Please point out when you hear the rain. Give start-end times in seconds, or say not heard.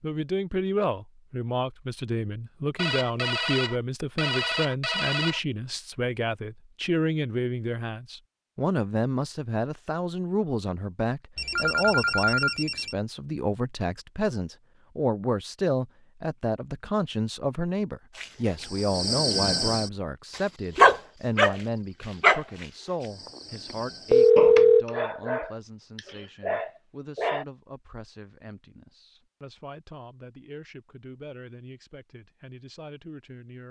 not heard.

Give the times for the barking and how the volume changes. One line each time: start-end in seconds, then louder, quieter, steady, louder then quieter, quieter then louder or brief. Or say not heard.
18.1-27.4 louder then quieter.